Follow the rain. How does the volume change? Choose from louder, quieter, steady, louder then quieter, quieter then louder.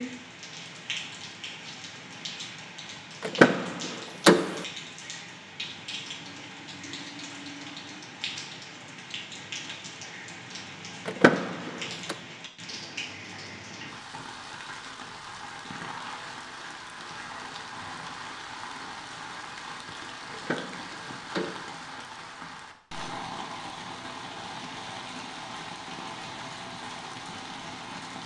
steady.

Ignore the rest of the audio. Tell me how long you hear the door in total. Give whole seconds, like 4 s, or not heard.
4 s.